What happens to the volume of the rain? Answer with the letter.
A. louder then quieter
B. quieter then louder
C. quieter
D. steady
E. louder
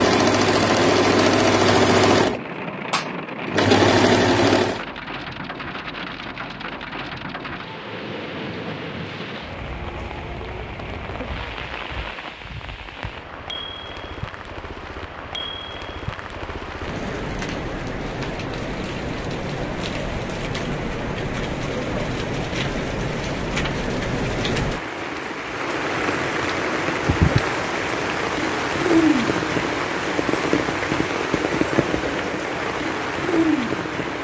E.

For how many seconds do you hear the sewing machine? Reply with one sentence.
You can hear the sewing machine for 5 seconds altogether.